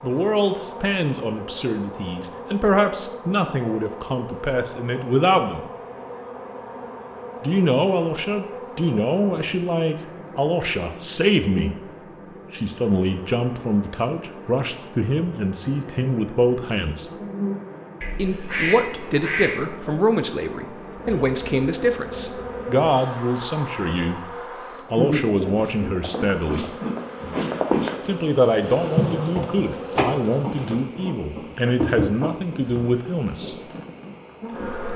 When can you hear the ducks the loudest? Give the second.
19 s.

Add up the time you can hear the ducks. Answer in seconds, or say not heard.
2 s.